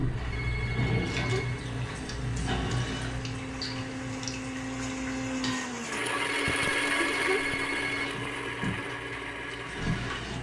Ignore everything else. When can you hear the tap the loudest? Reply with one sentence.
The loudest moment of the tap is at 1 second.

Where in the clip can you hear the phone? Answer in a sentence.
The phone can be heard from 0.3 to 1.6 s and from 6.5 to 8.2 s.